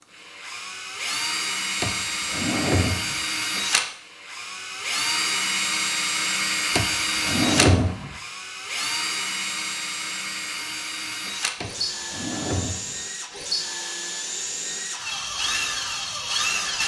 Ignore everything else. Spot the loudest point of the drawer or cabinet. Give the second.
8 s.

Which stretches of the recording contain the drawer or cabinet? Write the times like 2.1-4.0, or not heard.
1.8-3.2, 6.8-8.2, 11.6-13.0.